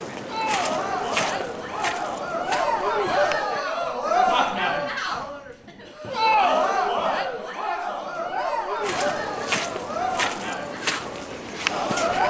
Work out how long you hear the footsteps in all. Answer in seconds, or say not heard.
7 s.